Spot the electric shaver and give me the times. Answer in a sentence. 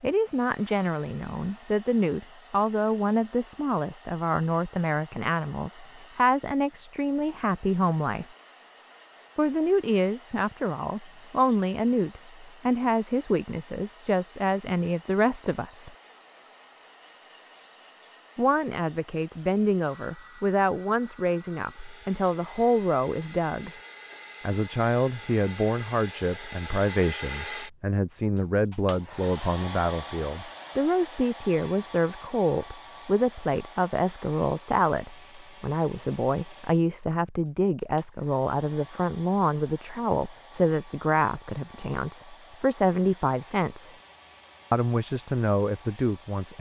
You can't hear the electric shaver here.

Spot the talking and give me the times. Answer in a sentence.
The talking can be heard from 0.0 to 8.2 s, from 9.3 to 15.9 s, from 18.4 to 23.7 s, from 24.4 to 43.9 s and from 44.7 to 46.5 s.